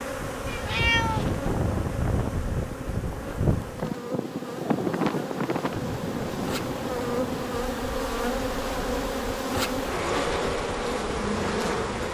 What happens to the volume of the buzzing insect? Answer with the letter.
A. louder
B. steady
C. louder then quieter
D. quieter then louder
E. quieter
A.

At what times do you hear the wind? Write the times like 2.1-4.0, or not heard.
0.0-12.0.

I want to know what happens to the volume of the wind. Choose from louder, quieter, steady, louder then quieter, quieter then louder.
quieter.